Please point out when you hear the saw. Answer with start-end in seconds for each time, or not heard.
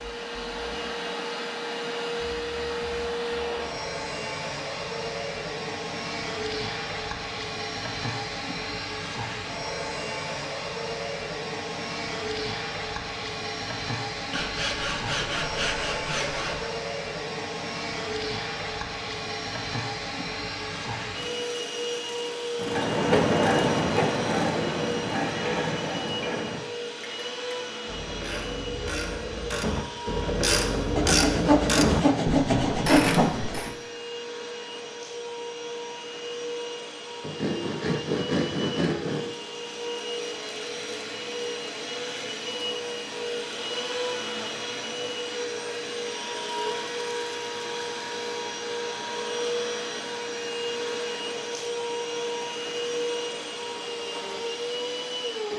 14.3-16.7, 30.9-33.6, 37.2-39.3.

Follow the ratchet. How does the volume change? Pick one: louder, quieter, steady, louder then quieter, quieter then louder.
quieter then louder.